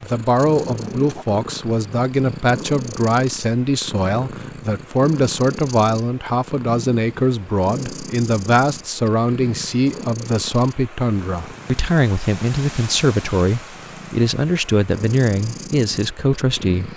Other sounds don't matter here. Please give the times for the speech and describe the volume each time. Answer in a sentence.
You can hear the speech from 0.0 to 16.9 s, at a steady volume.